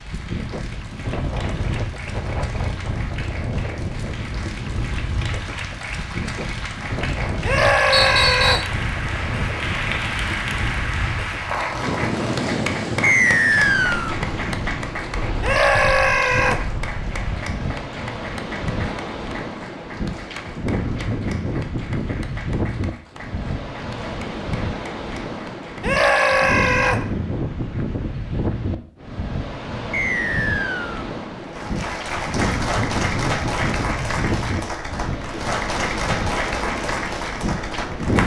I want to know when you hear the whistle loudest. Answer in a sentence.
The volume of the whistle peaks at 13 seconds.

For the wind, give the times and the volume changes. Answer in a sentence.
You can hear the wind from 0.0 to 38.2 s, at a steady volume.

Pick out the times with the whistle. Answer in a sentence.
The whistle can be heard from 7.9 to 8.7 s, from 13.0 to 14.2 s and from 29.9 to 31.1 s.